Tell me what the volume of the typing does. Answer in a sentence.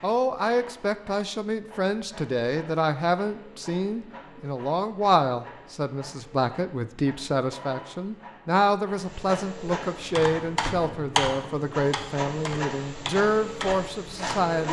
The loudness of the typing goes down.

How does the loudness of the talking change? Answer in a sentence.
The loudness of the talking stays about the same.